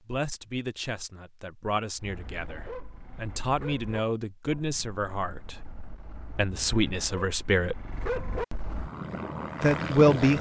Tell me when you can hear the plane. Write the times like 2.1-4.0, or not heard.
8.6-10.3.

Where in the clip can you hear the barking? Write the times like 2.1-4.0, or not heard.
1.9-8.9.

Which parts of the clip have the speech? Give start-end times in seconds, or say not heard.
0.1-7.8, 9.6-10.3.